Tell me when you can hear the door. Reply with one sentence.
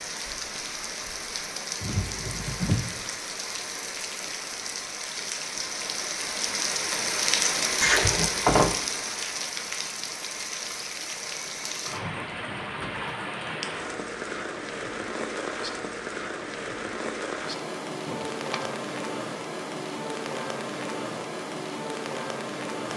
You can hear the door from 1.8 to 2.9 s, from 7.8 to 8.8 s and from 18.1 to 18.8 s.